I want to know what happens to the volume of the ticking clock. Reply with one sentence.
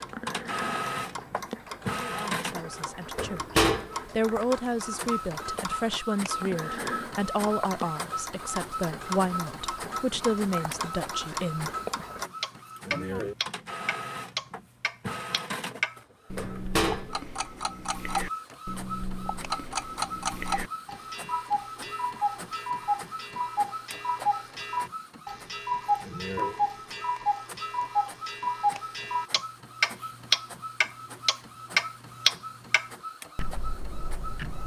The volume of the ticking clock goes up.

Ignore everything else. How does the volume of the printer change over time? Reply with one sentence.
The volume of the printer goes down.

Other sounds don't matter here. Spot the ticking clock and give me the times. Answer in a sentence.
The ticking clock can be heard from 0.0 to 34.6 s.